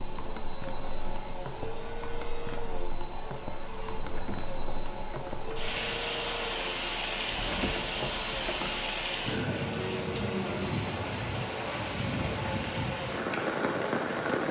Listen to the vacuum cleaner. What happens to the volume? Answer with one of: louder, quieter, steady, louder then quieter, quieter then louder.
steady.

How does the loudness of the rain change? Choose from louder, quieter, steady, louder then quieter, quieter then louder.
louder.